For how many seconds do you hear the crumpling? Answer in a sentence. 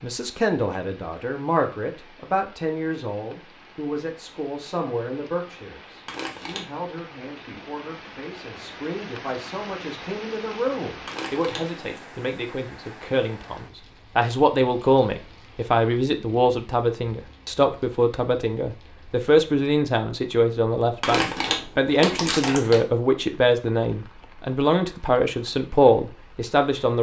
You can hear the crumpling for 3 seconds altogether.